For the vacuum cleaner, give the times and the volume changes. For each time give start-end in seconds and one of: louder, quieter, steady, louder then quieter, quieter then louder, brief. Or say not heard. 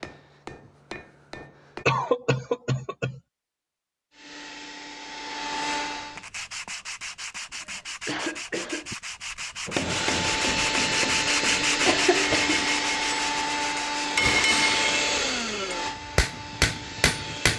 4.1-6.2 brief
9.8-17.5 quieter.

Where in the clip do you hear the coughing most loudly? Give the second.
2 s.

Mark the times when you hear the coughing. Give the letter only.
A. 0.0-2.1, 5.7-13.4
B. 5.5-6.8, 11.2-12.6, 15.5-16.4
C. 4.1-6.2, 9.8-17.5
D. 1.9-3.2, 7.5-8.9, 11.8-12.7
D.